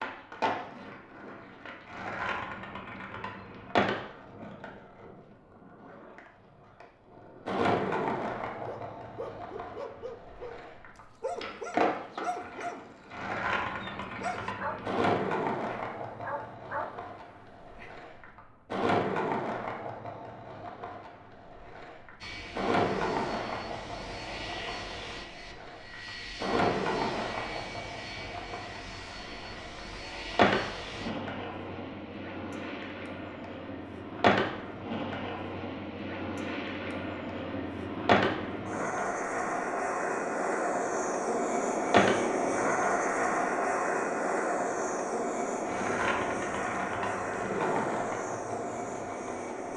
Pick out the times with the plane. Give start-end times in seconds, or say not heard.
22.2-49.7.